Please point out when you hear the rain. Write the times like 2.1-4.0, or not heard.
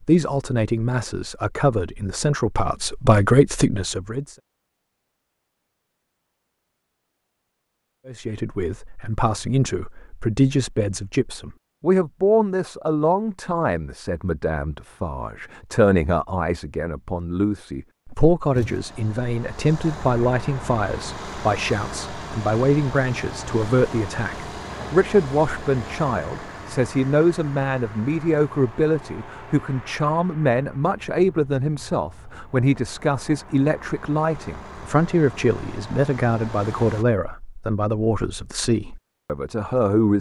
not heard.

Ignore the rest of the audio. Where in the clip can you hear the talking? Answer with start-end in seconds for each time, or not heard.
0.0-4.3, 8.1-40.1.